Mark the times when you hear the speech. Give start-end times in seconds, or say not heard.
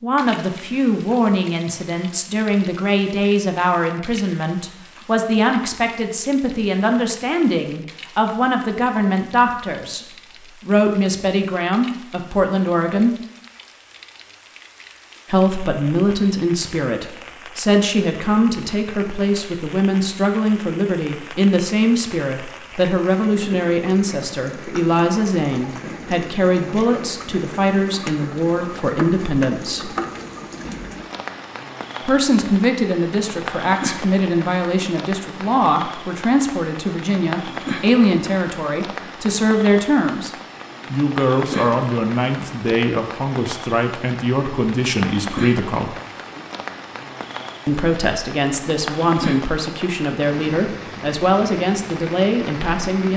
0.0-10.1, 10.7-13.2, 15.3-29.9, 32.0-40.3, 40.9-46.0, 47.6-53.1.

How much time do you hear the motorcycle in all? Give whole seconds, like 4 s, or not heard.
not heard.